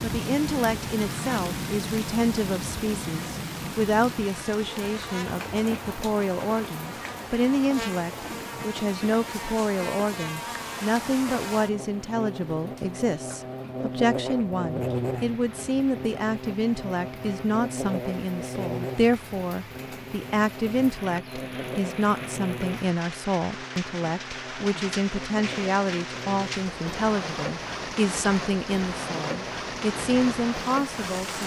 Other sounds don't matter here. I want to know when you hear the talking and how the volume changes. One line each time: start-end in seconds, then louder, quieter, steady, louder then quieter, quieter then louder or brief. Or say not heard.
0.0-31.4 steady.